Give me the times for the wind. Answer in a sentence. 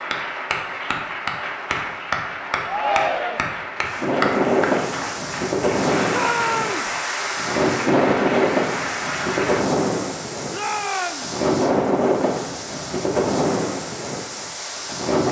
The wind can be heard from 3.8 to 15.2 s.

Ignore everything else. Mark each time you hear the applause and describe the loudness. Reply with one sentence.
The applause can be heard from 0.0 to 9.6 s, at a steady volume.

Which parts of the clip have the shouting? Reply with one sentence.
The shouting can be heard from 2.6 to 3.5 s, from 6.1 to 6.9 s and from 10.5 to 11.3 s.